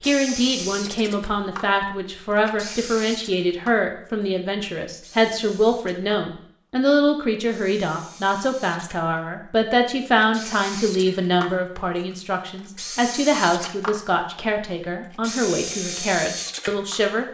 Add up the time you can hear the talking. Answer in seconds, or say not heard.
17 s.